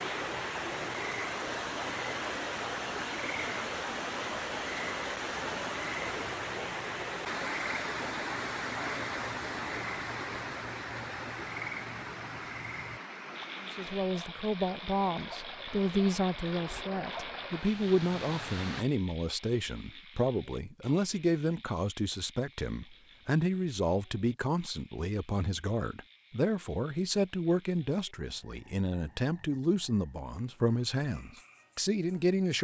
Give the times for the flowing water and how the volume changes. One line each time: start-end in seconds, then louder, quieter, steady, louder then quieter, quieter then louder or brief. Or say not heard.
0.0-18.9 quieter.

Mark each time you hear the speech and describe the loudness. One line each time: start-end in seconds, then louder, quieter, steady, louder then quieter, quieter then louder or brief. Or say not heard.
13.6-32.6 steady.